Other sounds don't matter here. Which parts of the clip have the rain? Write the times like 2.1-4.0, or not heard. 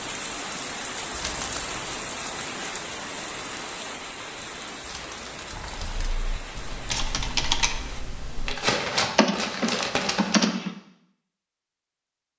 0.0-8.1.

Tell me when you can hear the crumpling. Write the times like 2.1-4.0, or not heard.
1.1-1.8, 4.8-6.1, 8.4-10.4.